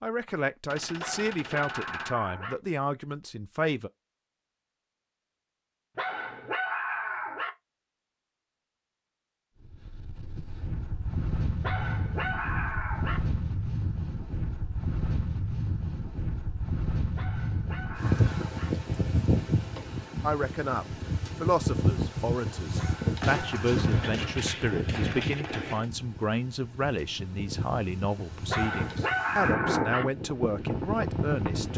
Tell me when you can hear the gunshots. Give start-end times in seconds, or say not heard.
0.7-2.1, 23.2-25.9.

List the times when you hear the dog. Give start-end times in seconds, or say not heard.
1.0-2.5, 6.0-7.5, 11.6-13.2, 17.1-18.7, 22.8-24.4, 28.5-30.1.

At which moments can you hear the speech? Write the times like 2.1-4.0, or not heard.
0.0-3.9, 20.2-31.7.